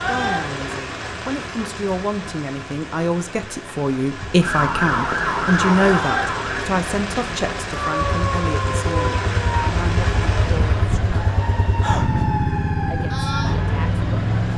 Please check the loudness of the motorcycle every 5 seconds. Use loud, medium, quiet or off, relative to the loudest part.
off, medium, loud.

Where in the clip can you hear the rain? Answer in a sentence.
The rain can be heard from 0.0 to 10.9 s.